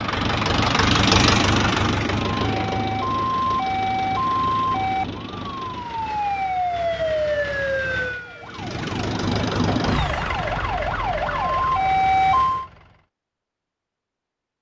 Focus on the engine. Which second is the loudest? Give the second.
1 s.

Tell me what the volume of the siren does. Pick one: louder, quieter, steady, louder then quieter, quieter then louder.
quieter then louder.